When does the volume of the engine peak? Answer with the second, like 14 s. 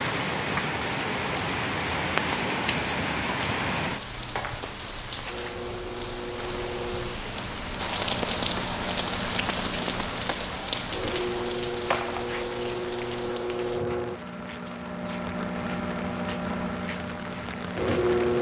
18 s.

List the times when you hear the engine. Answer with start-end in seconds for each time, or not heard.
5.2-18.3.